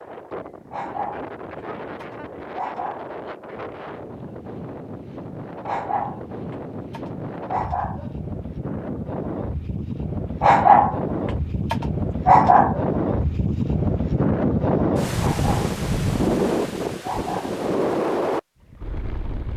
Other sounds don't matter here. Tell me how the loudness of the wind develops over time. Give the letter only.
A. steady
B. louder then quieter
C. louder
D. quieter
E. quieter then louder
C.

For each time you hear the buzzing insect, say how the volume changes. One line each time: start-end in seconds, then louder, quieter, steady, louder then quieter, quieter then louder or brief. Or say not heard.
not heard.